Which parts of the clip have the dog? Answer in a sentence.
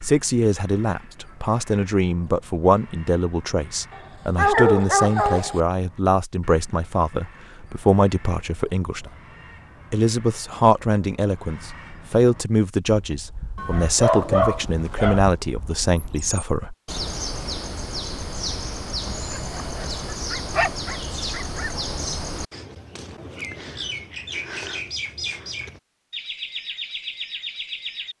You can hear the dog from 3.9 to 5.6 s, from 13.6 to 15.3 s and from 19.1 to 21.8 s.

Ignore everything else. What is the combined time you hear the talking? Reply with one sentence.
The talking can be heard for 16 seconds in total.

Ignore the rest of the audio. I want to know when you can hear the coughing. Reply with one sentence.
You can't hear the coughing here.